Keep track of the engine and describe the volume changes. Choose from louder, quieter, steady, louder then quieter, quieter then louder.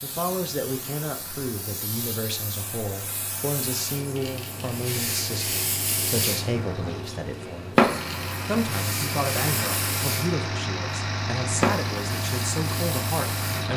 louder.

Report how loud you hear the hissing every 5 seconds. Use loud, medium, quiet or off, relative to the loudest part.
medium, loud, loud.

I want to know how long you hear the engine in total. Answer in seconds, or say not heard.
14 s.